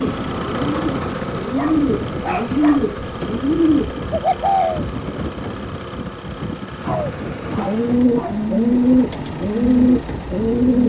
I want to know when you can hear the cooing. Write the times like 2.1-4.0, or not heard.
0.0-4.8, 6.8-10.8.